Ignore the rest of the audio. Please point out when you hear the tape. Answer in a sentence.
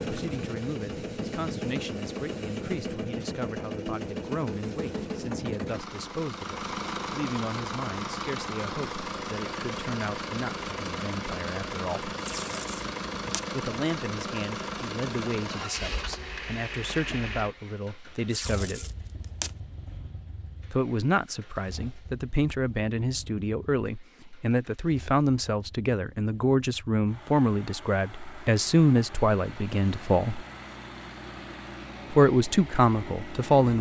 The tape can be heard from 12.2 to 13.4 s and from 18.3 to 19.6 s.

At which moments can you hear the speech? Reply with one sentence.
You can hear the speech from 0.1 to 12.1 s, from 13.5 to 18.9 s, from 20.7 to 30.4 s and from 32.1 to 33.7 s.